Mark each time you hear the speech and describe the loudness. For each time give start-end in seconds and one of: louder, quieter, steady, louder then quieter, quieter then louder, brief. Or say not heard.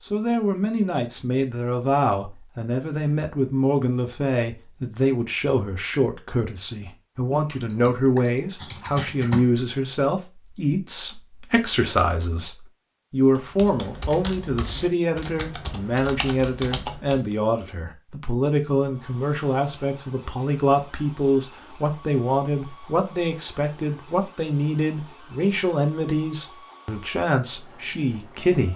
0.0-28.7 steady.